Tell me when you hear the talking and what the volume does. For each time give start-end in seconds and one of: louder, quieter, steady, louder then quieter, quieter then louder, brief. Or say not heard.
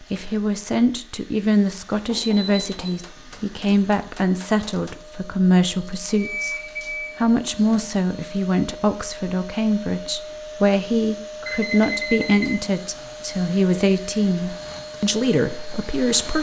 0.0-6.5 steady
7.2-16.3 steady.